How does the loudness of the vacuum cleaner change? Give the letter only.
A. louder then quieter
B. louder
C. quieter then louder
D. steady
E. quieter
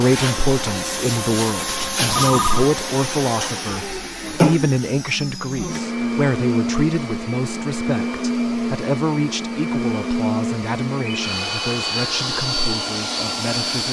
D.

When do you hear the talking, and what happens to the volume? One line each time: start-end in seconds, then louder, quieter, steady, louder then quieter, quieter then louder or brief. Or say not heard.
0.0-13.8 quieter.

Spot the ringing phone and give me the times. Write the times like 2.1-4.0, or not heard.
2.1-2.6, 11.2-12.1.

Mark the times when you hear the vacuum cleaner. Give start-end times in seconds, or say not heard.
0.0-13.8.